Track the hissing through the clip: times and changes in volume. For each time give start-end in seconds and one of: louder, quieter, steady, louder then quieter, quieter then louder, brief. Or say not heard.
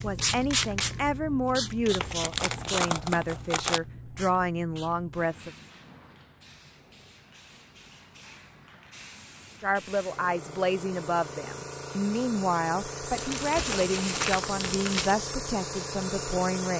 0.0-16.7 quieter then louder.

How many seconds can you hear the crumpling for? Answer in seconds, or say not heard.
4 s.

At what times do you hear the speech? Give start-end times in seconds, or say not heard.
0.0-5.5, 9.6-16.7.